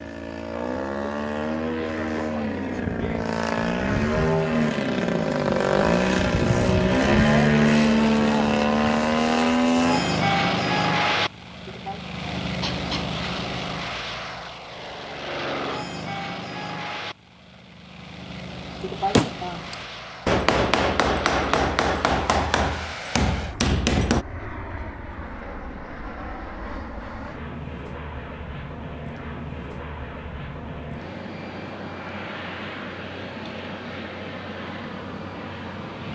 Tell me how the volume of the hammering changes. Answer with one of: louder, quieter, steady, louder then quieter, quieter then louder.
steady.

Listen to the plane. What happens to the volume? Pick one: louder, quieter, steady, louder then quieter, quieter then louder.
quieter.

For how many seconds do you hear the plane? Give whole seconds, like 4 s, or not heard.
36 s.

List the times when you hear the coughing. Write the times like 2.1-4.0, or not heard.
11.7-13.1, 18.8-19.6.